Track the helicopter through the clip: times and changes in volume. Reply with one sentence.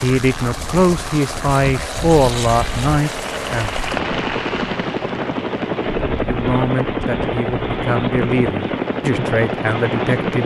The helicopter can be heard from 0.0 to 10.4 s, getting louder.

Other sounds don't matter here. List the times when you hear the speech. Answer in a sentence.
The speech can be heard from 0.0 to 3.8 s and from 6.2 to 10.4 s.